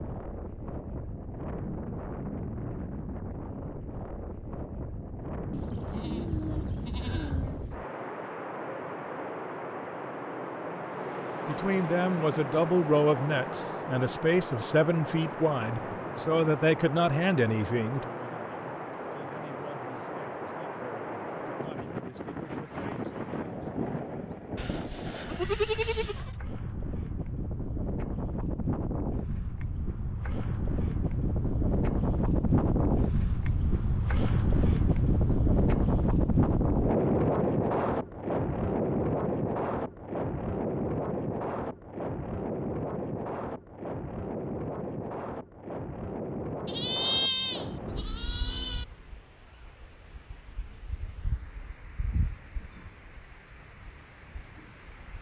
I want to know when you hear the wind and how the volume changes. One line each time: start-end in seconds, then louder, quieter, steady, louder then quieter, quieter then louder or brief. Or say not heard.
0.0-55.1 louder then quieter.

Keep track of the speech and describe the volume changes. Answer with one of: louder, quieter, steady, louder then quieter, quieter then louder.
quieter.